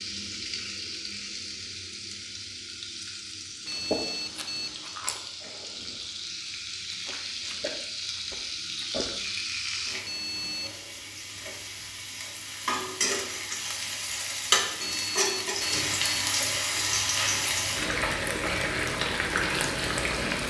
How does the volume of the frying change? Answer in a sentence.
The loudness of the frying goes up.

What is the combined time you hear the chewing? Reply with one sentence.
You can hear the chewing for 5 seconds altogether.